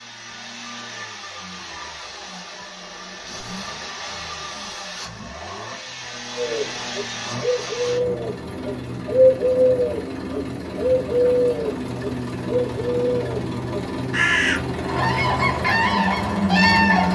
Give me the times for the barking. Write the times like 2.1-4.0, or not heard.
not heard.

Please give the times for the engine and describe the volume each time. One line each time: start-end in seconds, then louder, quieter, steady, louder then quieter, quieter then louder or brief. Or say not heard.
0.0-17.1 louder.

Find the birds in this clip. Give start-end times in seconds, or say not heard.
6.3-17.1.